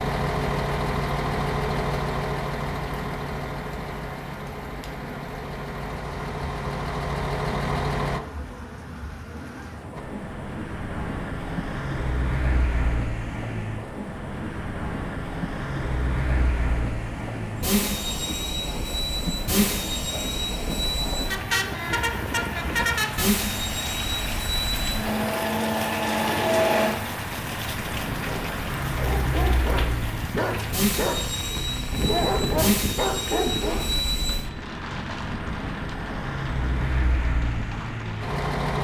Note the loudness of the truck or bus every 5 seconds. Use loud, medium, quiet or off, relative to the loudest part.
loud, loud, medium, loud, loud, loud, loud, loud.